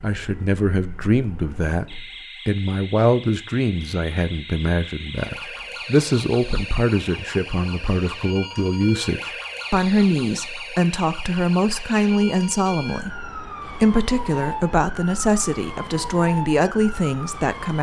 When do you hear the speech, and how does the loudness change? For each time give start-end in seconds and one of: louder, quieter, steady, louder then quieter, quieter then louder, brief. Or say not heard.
0.0-1.9 brief
2.5-17.7 steady.